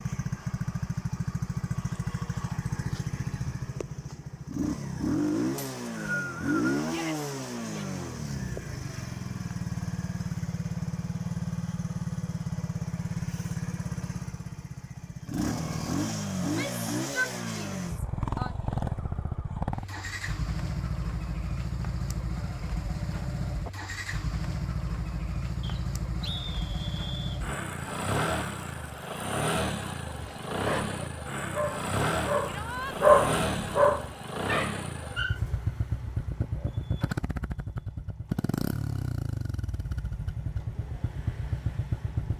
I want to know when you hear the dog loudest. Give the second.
33 s.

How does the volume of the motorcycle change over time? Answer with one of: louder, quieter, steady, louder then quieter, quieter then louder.
steady.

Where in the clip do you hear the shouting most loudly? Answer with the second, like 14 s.
17 s.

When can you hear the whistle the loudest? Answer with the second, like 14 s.
6 s.